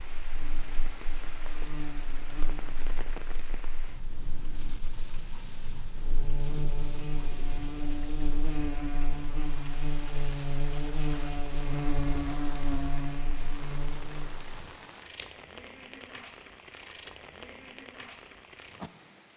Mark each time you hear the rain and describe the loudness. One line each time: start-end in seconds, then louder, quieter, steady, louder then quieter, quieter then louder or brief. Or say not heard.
0.0-19.3 steady.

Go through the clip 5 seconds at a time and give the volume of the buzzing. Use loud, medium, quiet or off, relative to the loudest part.
quiet, loud, loud, off.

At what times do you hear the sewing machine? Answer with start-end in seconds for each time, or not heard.
not heard.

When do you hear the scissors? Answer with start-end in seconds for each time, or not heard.
15.1-16.1.